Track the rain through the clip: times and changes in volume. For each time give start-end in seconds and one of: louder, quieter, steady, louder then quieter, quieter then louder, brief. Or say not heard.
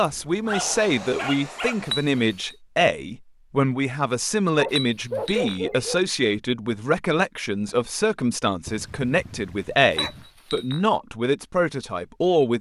not heard.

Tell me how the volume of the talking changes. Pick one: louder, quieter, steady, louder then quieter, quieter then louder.
steady.